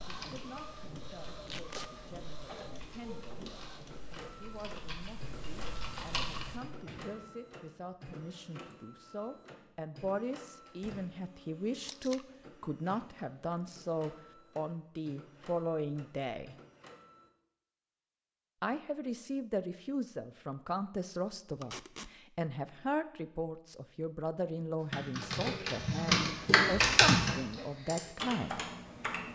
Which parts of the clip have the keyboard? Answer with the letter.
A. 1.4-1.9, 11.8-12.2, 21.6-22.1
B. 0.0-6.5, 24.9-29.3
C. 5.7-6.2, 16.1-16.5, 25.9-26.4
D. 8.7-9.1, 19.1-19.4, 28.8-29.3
B.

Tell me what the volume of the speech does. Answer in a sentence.
The loudness of the speech goes up.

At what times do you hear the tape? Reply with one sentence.
You can hear the tape from 1.4 to 1.9 s, from 11.8 to 12.2 s and from 21.6 to 22.1 s.